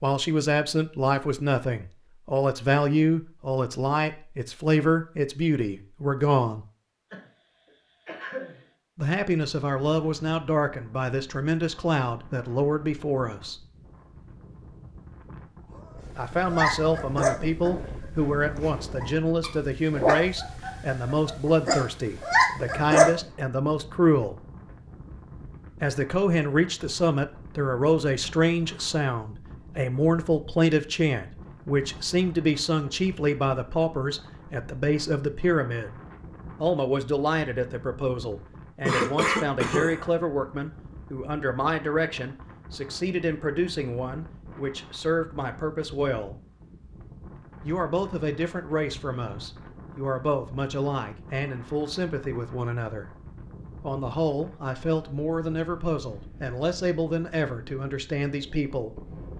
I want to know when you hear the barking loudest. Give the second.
23 s.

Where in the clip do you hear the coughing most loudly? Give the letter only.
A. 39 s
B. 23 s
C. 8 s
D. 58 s
A.